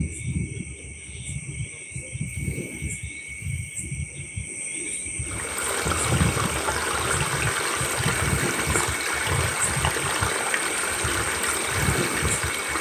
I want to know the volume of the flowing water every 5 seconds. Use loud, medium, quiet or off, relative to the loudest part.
off, loud, loud.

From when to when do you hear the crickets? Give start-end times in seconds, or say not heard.
0.0-12.7.